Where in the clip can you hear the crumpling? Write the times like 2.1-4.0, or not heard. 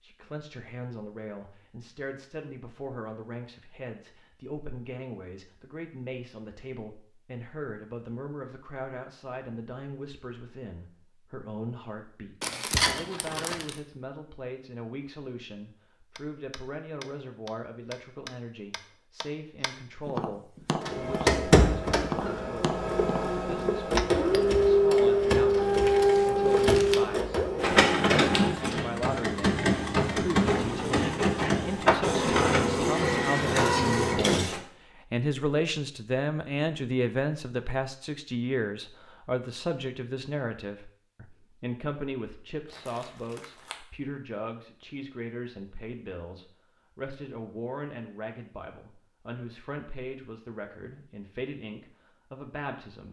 12.4-13.8, 25.4-27.1, 42.6-43.8.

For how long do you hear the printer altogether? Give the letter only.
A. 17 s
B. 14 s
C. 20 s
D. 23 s
B.